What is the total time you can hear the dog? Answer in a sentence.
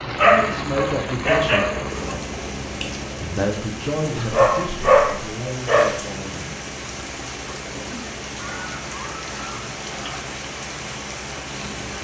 You can hear the dog for 6 seconds altogether.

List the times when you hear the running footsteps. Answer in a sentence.
The running footsteps can't be heard in this clip.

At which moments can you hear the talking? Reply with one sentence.
The talking can be heard from 0.1 to 1.6 s and from 3.2 to 6.5 s.